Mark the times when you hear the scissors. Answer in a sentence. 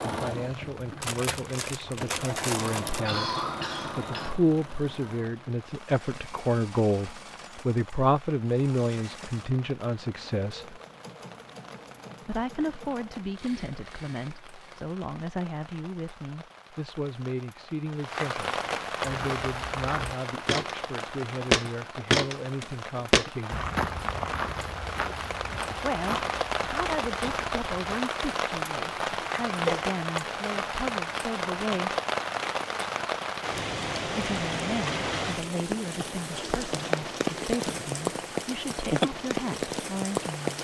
You can't hear the scissors here.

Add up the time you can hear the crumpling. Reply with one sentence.
The crumpling can be heard for 2 seconds in total.